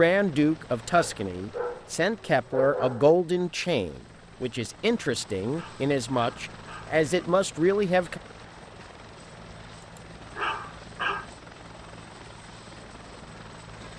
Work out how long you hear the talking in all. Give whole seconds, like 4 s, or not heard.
8 s.